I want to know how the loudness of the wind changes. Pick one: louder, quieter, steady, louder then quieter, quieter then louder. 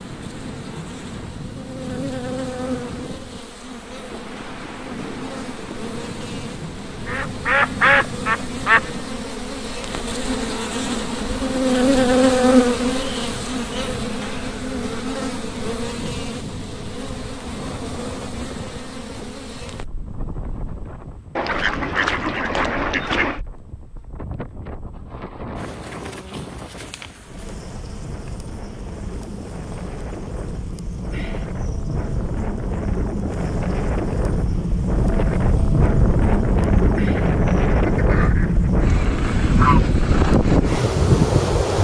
louder.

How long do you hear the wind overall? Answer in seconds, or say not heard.
42 s.